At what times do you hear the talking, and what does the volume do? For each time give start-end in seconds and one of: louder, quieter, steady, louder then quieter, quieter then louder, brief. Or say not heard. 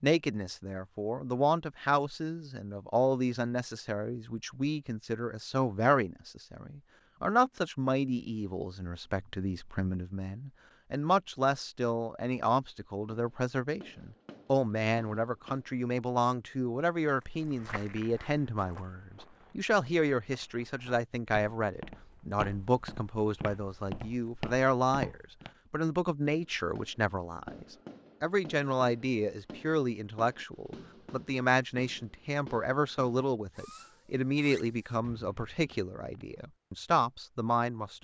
0.0-37.9 steady.